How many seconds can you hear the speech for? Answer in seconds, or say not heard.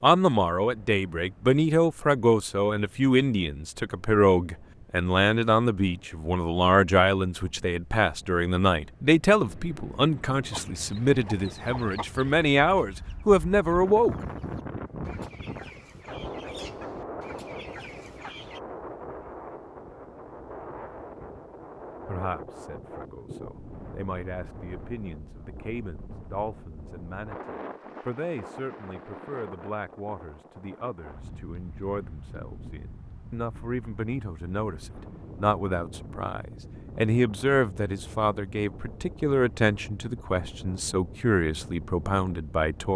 35 s.